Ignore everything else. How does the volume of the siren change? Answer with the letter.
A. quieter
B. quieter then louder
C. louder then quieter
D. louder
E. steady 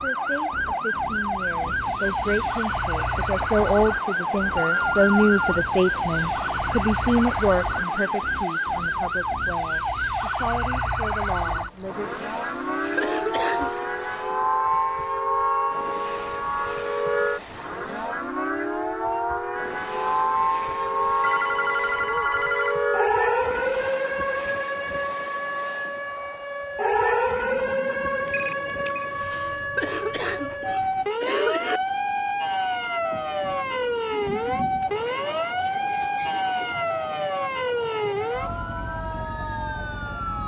E.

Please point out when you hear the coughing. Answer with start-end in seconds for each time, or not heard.
12.9-13.8, 29.8-31.8.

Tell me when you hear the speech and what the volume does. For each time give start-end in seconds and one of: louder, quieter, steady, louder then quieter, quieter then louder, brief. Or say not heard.
0.0-12.1 louder then quieter.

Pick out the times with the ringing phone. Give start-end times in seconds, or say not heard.
4.5-5.7, 21.2-22.8, 28.1-29.1.